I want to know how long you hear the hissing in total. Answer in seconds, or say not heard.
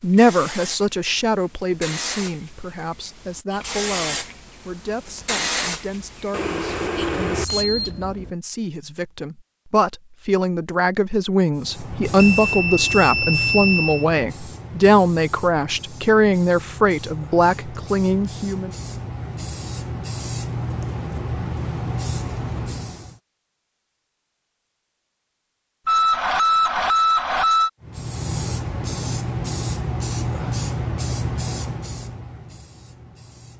25 s.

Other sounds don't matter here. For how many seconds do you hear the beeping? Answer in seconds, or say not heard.
6 s.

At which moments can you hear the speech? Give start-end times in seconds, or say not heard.
0.0-18.7.